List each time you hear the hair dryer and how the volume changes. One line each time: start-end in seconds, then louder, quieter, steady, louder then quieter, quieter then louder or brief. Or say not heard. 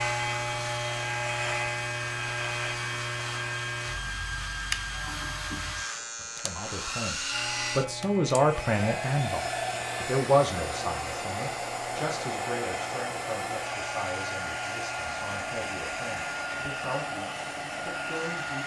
0.0-18.6 steady.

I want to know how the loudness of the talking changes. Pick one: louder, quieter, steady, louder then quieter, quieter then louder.
quieter.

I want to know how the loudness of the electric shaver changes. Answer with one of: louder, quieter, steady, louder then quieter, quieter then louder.
quieter.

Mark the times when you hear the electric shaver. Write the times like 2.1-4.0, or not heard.
0.0-18.6.